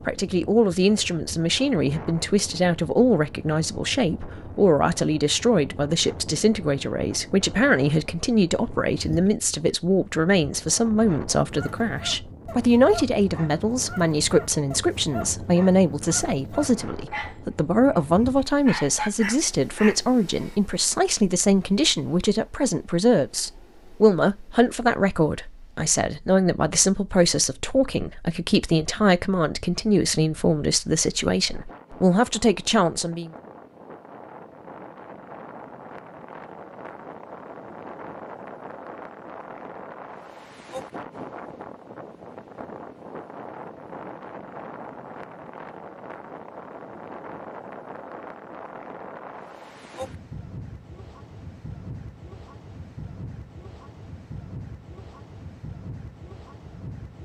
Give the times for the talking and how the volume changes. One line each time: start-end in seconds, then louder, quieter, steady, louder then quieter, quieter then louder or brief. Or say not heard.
0.1-33.3 steady.